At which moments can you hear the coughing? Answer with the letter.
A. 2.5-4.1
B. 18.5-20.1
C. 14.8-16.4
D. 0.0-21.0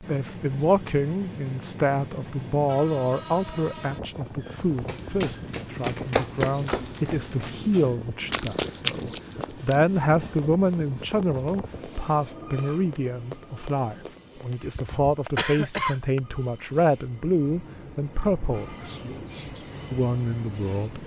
C.